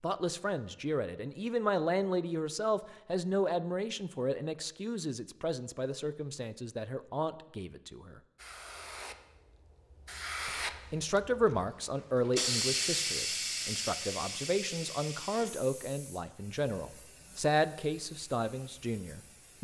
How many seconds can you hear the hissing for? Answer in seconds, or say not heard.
11 s.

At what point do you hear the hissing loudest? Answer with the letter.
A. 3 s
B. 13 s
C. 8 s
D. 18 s
B.